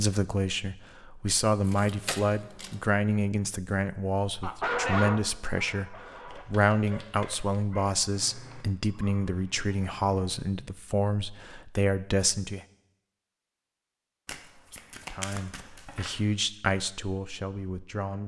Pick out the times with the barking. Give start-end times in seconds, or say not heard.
4.4-10.2.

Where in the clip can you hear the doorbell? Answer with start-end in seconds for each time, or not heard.
not heard.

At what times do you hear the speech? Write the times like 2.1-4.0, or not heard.
0.0-12.7, 15.1-18.2.